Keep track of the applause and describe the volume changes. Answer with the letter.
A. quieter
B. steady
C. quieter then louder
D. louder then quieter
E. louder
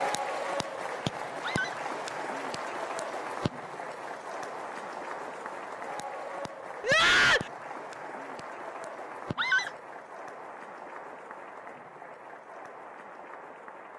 A.